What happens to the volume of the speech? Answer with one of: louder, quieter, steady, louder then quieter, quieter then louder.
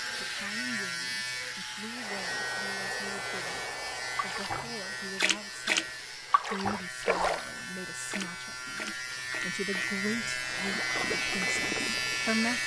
louder.